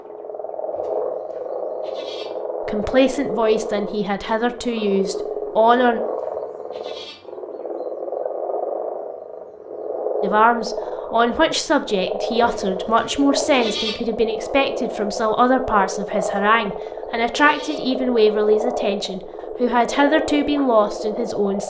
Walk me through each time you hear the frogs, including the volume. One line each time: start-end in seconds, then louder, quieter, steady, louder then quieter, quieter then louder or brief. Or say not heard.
0.0-21.6 steady.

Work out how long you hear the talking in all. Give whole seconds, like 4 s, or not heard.
15 s.